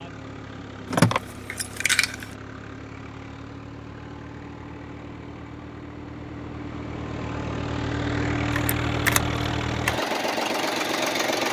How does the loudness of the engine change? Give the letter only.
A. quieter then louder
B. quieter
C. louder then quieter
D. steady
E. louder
E.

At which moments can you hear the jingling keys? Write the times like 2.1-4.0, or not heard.
0.9-2.2, 8.6-9.9.